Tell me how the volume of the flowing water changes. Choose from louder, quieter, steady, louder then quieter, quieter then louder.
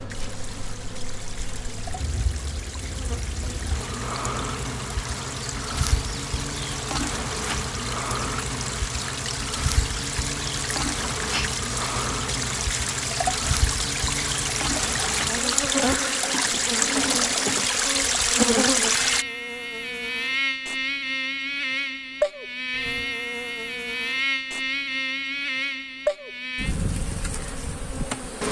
louder.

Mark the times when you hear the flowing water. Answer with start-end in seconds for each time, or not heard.
0.0-19.2.